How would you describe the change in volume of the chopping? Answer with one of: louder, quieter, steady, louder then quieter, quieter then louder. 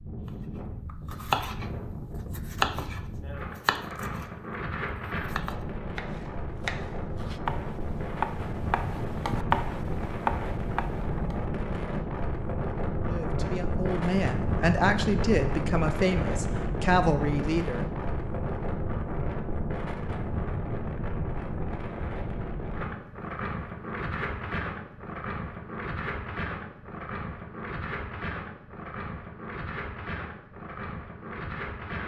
quieter then louder.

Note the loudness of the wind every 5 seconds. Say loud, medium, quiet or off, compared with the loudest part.
medium, loud, loud, loud, loud, medium, medium.